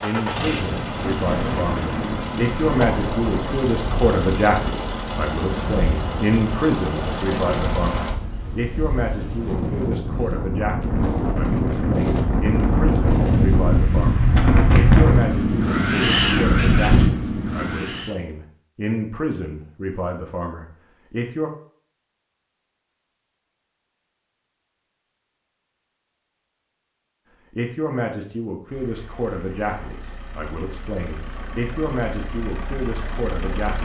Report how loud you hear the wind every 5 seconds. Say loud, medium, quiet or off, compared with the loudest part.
medium, medium, loud, loud, off, off, off.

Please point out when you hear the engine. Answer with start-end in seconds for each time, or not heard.
0.0-8.2, 28.6-33.7.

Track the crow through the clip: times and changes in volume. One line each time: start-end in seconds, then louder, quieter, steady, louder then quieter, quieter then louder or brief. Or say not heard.
not heard.